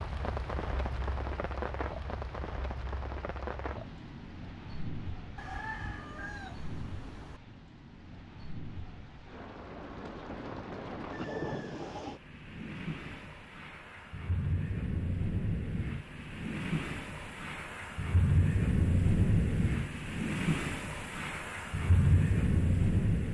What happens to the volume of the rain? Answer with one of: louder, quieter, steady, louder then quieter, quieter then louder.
quieter then louder.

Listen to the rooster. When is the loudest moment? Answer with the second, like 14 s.
6 s.